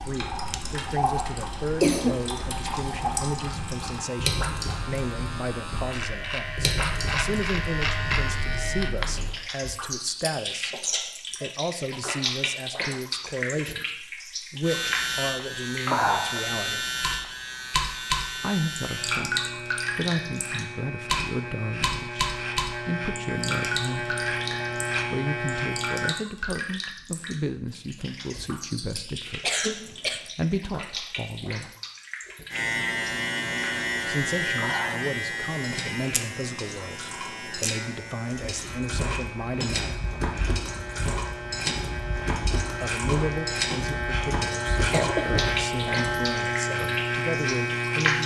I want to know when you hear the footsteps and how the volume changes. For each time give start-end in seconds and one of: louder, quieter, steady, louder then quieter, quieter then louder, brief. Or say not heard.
38.4-46.2 steady.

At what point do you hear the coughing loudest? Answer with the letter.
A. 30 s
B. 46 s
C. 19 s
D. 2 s
D.